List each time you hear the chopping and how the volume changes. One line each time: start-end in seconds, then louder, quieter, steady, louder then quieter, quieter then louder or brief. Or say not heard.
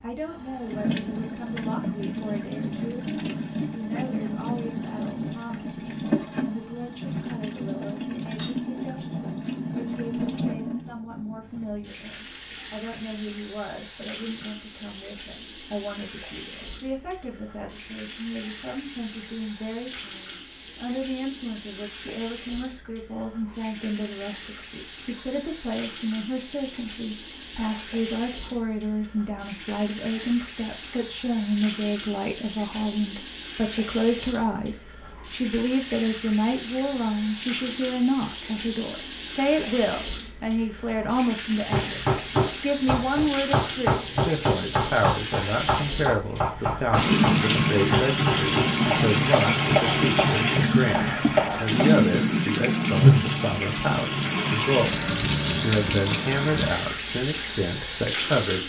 41.7-52.0 steady.